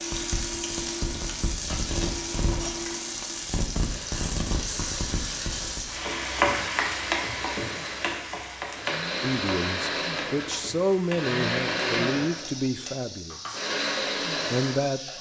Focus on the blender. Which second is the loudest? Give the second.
12 s.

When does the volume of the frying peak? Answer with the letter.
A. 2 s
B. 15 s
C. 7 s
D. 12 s
C.